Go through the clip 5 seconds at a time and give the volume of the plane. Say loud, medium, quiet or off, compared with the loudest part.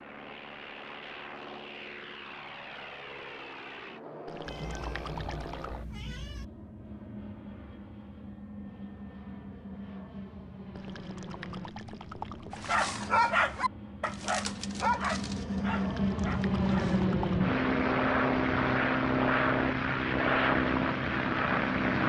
quiet, quiet, quiet, loud, loud.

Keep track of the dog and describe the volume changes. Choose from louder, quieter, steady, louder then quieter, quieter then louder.
quieter.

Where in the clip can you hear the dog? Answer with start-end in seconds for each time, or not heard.
12.6-17.1.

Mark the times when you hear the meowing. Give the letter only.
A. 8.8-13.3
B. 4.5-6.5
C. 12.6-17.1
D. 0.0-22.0
B.